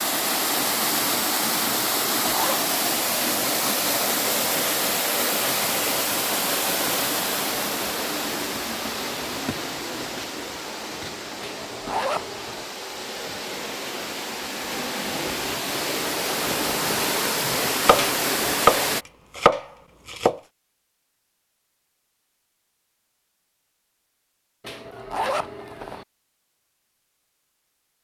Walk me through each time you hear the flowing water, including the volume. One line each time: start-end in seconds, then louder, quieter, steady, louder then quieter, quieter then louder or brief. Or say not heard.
0.0-19.1 quieter then louder.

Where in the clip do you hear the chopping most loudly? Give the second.
19 s.